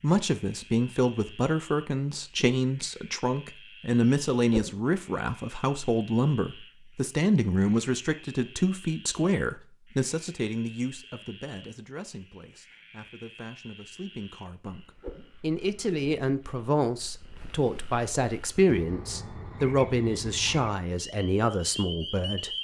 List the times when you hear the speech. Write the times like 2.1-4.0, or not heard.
0.0-22.5.